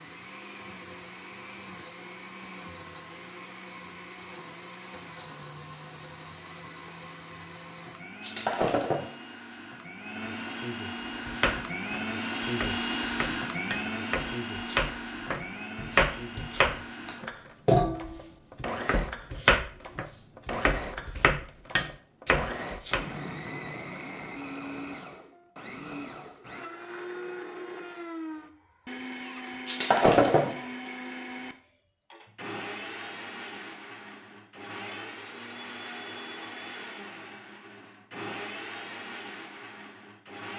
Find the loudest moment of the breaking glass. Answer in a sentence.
The loudest moment of the breaking glass is at 30 seconds.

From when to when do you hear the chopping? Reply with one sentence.
The chopping can be heard from 11.2 to 23.1 s.